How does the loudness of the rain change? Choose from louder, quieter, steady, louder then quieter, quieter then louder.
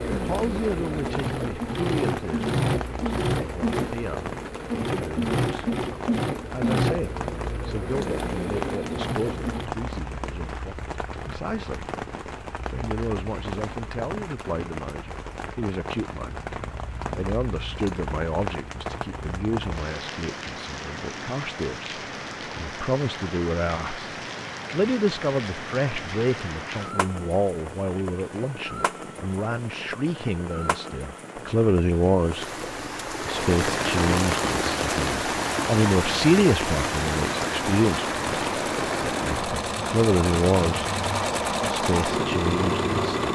louder.